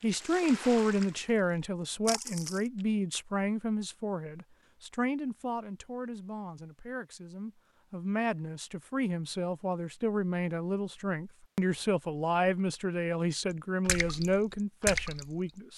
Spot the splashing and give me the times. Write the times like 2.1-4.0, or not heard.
0.0-2.9, 13.8-15.7.